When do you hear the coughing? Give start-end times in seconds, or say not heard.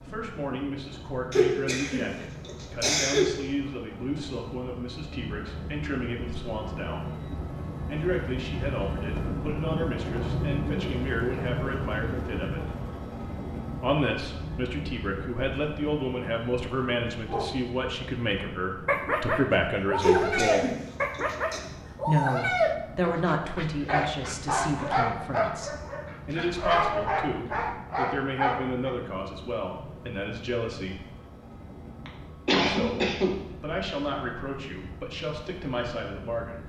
1.3-3.2, 20.0-21.6, 32.0-33.4.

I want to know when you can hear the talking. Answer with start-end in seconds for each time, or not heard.
0.0-7.1, 7.8-12.7, 13.8-20.6, 22.1-31.1, 32.6-36.6.